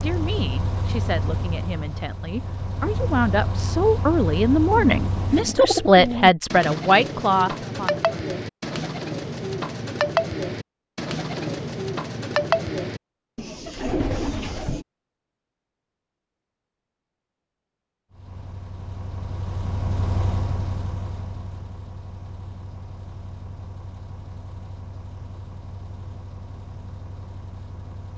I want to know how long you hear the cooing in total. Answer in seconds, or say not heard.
10 s.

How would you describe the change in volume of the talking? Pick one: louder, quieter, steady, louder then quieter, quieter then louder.
louder.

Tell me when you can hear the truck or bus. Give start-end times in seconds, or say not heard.
0.0-5.5, 18.1-28.1.